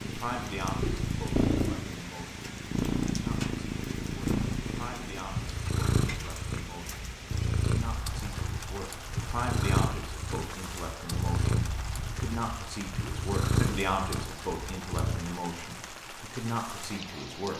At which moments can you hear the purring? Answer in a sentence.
You can hear the purring from 0.0 to 15.2 s.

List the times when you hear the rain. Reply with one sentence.
The rain can be heard from 0.0 to 17.5 s.